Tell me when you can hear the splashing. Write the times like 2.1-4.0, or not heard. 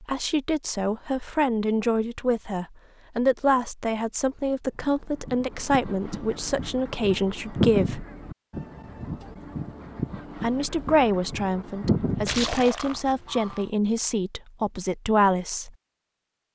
12.2-13.0.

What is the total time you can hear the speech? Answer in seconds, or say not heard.
13 s.